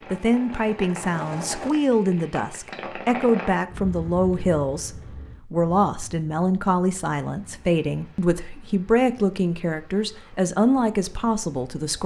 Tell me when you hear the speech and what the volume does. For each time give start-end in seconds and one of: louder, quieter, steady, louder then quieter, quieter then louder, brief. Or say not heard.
0.1-12.0 steady.